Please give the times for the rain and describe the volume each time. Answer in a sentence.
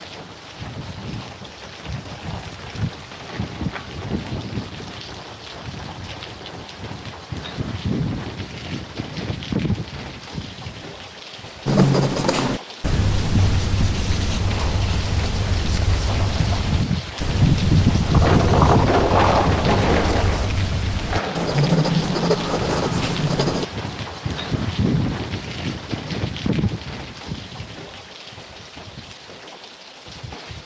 The rain can be heard from 0.0 to 30.6 s, getting louder then quieter.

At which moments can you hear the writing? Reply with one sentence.
The writing can be heard from 11.7 to 23.6 s.